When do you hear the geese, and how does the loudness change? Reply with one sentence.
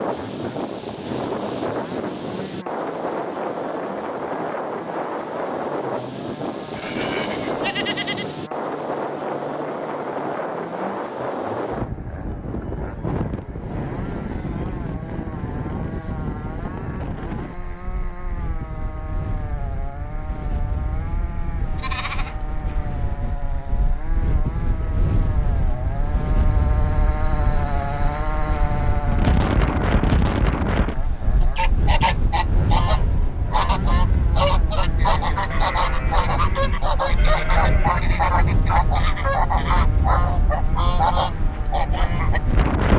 The geese can be heard from 31.4 to 42.4 s, at a steady volume.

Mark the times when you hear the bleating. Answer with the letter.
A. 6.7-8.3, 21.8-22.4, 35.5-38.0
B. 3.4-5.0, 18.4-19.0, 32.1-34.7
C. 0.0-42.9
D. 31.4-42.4
A.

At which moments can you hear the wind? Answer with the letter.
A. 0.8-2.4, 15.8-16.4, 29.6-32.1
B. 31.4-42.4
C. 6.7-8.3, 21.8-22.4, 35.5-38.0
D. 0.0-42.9
D.